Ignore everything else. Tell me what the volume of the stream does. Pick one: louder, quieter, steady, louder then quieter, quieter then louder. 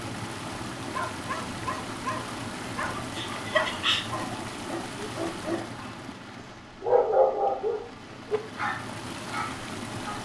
quieter then louder.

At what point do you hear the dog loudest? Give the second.
7 s.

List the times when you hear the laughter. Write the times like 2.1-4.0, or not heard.
3.1-4.0.